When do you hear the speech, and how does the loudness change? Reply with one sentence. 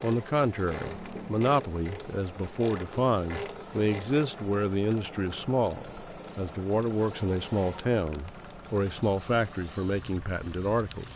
You can hear the speech from 0.0 to 11.1 s, at a steady volume.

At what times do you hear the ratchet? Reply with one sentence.
The ratchet can be heard from 0.0 to 4.4 s.